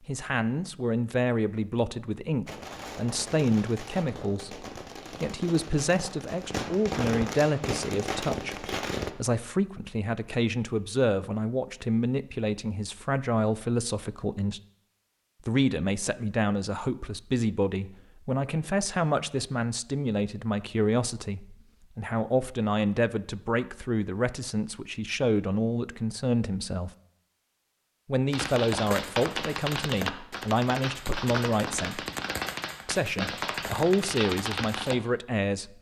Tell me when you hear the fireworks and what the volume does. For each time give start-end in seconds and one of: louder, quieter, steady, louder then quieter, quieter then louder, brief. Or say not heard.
2.5-9.1 louder
28.3-35.0 steady.